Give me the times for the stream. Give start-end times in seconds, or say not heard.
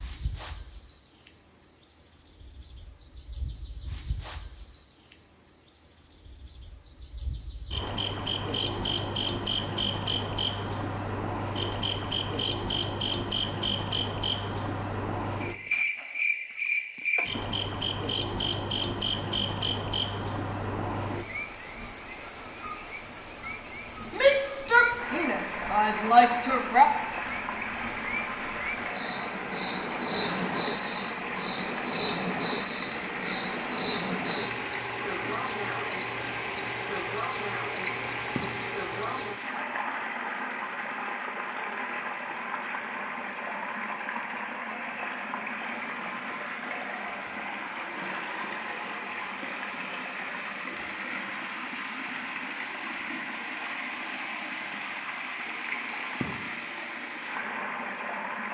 24.9-58.4.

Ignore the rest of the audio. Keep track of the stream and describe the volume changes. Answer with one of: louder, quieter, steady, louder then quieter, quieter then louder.
steady.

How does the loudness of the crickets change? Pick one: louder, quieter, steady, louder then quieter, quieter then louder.
louder.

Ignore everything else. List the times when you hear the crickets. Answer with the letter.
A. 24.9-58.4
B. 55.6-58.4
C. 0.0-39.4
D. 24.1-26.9
C.